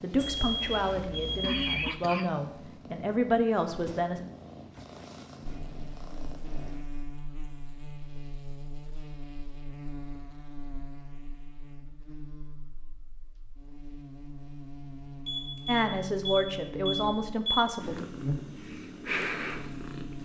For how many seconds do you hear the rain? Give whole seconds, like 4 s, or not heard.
not heard.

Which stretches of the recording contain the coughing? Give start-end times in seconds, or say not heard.
0.7-2.5.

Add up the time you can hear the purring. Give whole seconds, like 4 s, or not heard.
9 s.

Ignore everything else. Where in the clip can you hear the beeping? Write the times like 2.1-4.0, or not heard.
0.1-1.9, 15.2-17.8.